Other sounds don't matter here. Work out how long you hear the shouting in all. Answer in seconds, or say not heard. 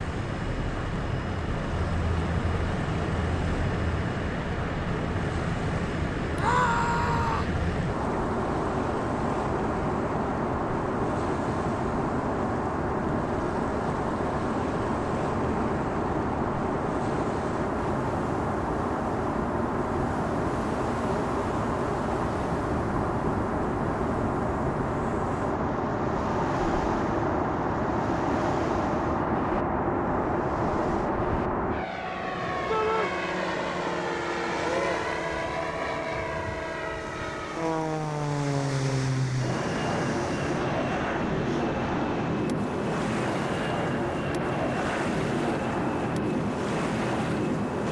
2 s.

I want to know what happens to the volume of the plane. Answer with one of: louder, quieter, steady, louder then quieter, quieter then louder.
steady.